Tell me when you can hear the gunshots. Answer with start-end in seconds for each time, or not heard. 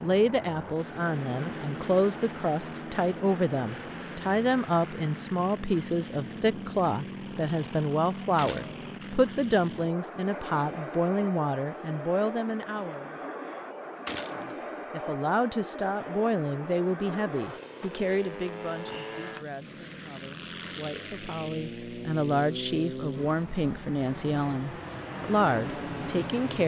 8.3-8.9, 14.1-14.6.